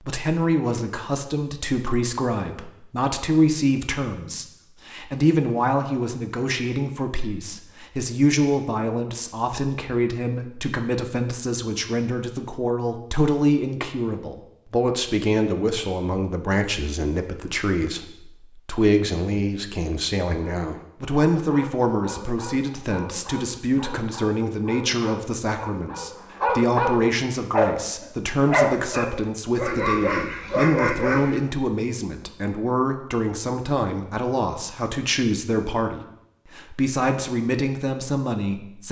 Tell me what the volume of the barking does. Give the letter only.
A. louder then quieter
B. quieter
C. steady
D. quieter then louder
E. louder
E.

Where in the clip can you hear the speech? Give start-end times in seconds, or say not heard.
0.1-38.8.